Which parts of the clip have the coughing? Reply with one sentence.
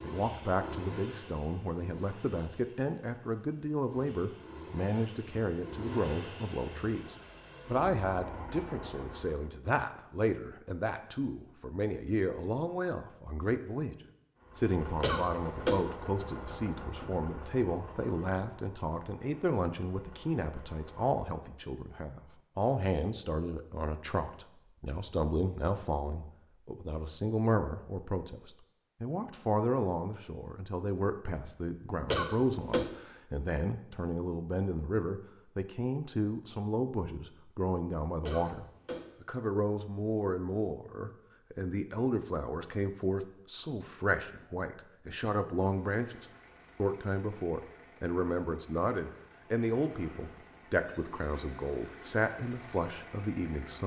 You can hear the coughing from 15.0 to 15.9 s, from 32.1 to 33.0 s and from 38.2 to 39.1 s.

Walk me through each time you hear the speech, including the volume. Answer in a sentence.
The speech can be heard from 0.0 to 53.8 s, at a steady volume.